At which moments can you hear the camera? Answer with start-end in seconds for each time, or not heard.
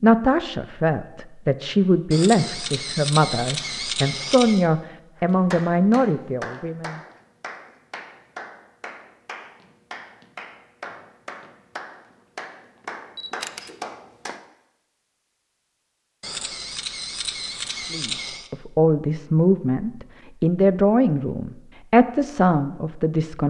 2.1-4.7, 13.2-13.7, 16.2-18.5.